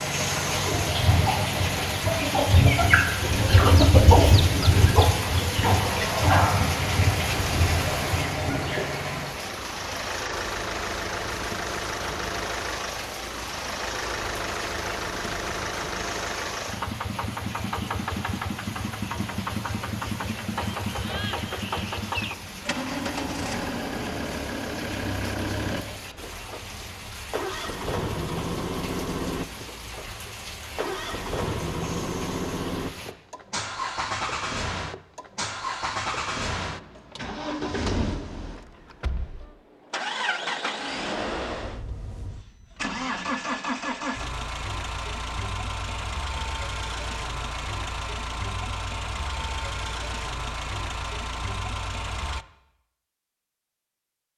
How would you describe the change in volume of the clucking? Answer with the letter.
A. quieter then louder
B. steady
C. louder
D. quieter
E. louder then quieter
E.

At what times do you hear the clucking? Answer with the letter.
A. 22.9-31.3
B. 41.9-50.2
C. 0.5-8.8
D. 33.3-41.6
C.